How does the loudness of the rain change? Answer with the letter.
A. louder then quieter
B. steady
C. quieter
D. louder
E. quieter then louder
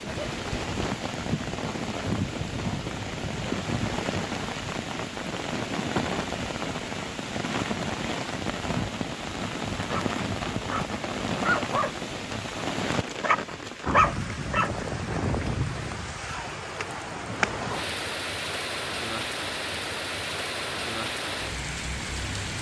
B.